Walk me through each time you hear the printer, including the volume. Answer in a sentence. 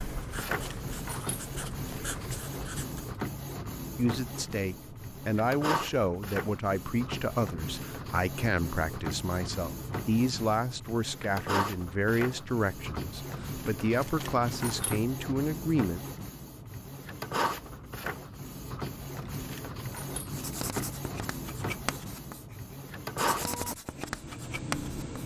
You can hear the printer from 0.0 to 25.2 s, at a steady volume.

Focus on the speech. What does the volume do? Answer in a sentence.
The loudness of the speech stays about the same.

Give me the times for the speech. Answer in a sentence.
The speech can be heard from 4.0 to 16.0 s.